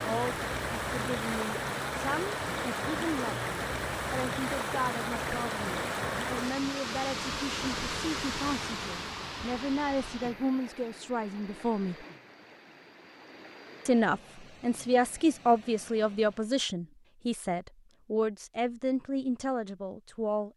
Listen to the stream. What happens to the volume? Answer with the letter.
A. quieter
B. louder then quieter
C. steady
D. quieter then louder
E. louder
A.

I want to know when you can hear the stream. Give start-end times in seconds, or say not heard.
0.0-16.6.